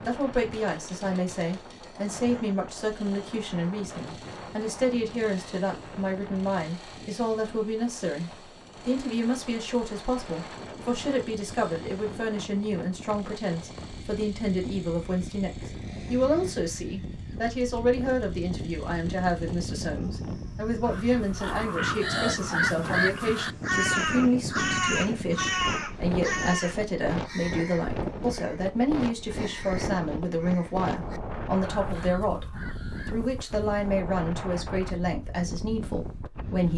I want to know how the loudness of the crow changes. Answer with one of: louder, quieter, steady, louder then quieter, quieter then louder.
quieter.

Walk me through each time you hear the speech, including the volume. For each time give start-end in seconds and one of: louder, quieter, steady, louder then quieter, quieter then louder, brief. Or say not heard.
0.1-36.7 steady.